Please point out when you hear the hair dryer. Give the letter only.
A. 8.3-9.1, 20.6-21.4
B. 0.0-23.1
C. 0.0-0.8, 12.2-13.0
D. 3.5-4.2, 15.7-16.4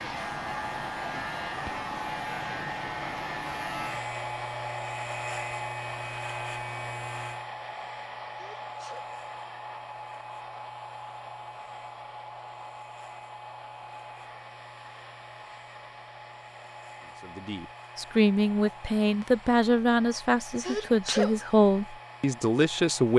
B.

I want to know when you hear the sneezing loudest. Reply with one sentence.
The volume of the sneezing peaks at 21 seconds.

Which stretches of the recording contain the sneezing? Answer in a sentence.
The sneezing can be heard from 8.3 to 9.1 s and from 20.6 to 21.4 s.